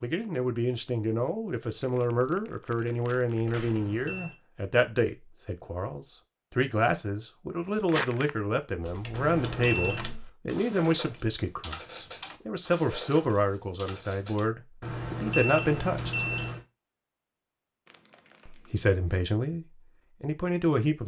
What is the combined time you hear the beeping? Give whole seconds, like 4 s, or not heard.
4 s.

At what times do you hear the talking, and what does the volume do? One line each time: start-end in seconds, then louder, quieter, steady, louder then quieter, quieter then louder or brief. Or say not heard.
0.0-16.2 steady
18.4-21.0 brief.